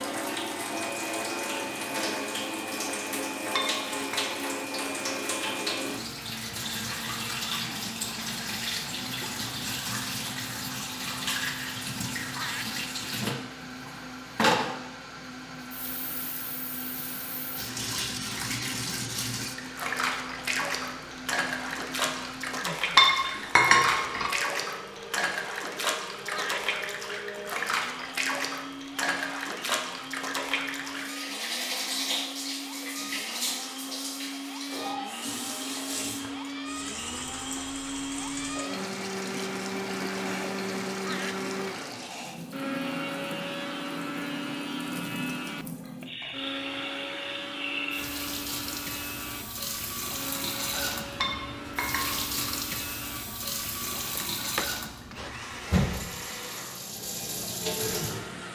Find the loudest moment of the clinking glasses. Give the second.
23 s.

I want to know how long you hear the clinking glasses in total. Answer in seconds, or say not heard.
3 s.